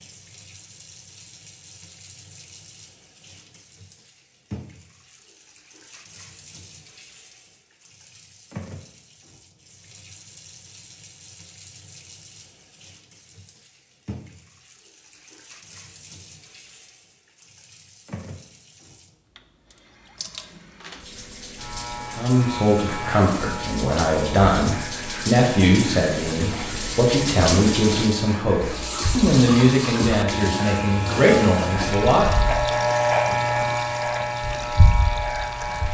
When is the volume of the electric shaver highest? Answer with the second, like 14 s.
33 s.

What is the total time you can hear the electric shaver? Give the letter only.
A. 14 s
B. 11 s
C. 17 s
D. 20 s
A.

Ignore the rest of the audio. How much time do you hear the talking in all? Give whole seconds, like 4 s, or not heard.
10 s.